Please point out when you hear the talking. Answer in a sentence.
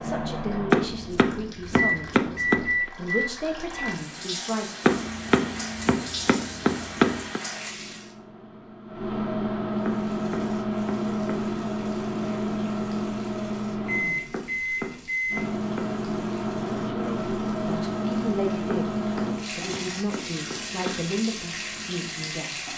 The talking can be heard from 0.0 to 4.8 s and from 16.9 to 22.7 s.